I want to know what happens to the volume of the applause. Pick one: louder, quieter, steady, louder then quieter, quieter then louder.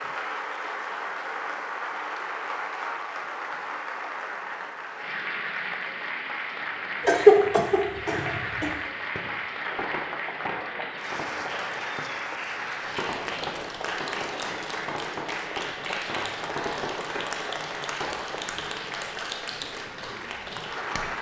steady.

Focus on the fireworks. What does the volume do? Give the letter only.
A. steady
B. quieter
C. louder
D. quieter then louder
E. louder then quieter
D.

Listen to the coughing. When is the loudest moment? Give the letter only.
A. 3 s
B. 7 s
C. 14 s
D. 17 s
B.